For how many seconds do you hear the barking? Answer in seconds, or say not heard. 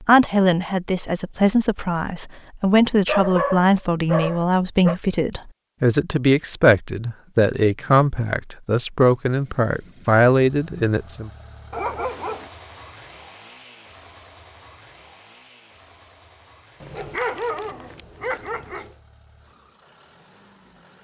5 s.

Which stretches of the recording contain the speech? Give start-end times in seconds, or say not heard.
0.0-11.3.